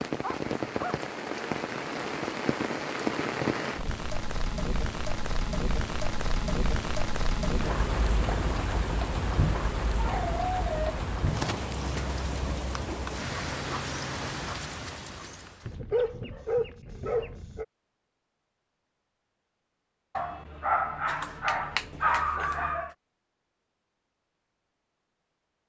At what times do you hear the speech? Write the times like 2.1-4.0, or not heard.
not heard.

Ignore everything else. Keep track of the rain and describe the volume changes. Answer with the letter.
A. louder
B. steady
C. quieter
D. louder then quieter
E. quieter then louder
B.